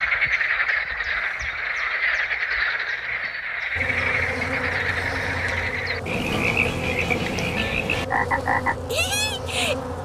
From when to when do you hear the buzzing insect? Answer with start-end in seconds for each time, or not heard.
3.8-10.0.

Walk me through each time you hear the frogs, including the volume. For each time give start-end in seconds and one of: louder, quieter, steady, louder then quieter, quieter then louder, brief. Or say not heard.
0.0-9.8 steady.